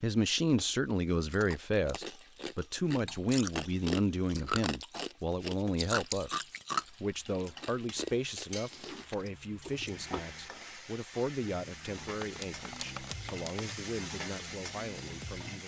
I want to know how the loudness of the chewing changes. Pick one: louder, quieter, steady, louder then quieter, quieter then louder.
louder then quieter.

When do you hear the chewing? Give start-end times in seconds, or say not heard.
1.3-10.2.